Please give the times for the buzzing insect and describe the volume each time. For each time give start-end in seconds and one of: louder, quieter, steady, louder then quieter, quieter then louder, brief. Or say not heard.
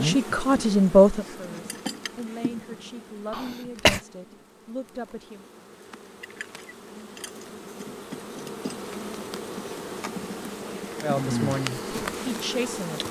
0.0-13.0 quieter then louder.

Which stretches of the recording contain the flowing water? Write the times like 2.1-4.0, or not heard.
not heard.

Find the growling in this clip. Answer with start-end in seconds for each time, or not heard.
not heard.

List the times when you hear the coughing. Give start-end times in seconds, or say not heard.
3.3-4.0.